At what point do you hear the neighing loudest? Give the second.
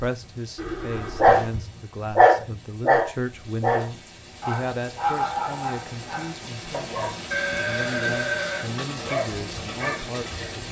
8 s.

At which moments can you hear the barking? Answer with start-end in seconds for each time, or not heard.
1.1-10.6.